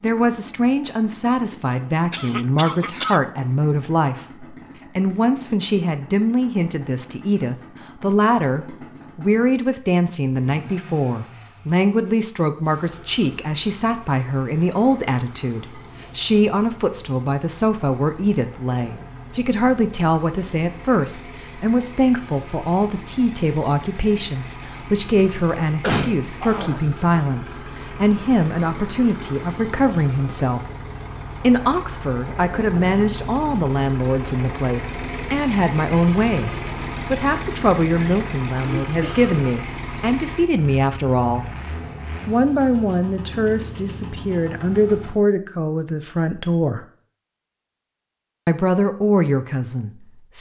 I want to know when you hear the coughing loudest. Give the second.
26 s.